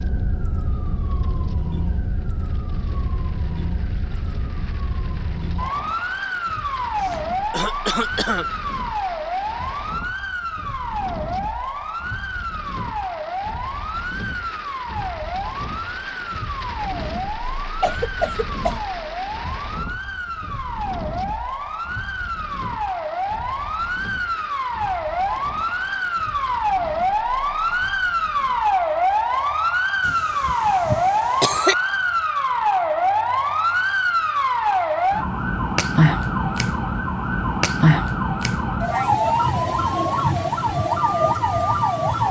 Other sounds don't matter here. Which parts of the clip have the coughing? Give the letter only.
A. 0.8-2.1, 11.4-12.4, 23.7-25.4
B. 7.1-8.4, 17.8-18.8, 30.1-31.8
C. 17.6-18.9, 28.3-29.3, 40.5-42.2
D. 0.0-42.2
B.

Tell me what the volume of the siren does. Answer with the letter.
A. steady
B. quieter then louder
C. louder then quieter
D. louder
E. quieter
D.